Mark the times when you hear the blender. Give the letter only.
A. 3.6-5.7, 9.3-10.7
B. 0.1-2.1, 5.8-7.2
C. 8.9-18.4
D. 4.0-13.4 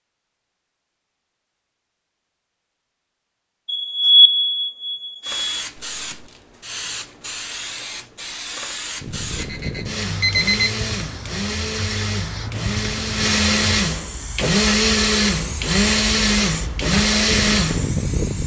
C.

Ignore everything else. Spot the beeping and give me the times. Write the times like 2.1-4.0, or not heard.
3.6-5.7, 9.3-10.7.